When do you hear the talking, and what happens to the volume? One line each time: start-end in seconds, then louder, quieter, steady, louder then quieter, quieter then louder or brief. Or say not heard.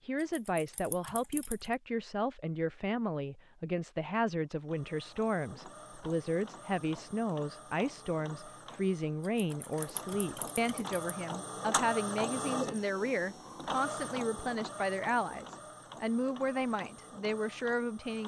0.1-18.2 steady.